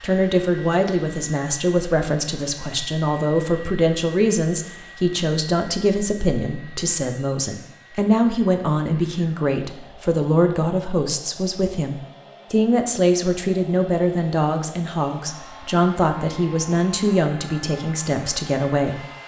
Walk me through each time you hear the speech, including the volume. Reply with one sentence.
The speech can be heard from 0.0 to 19.1 s, at a steady volume.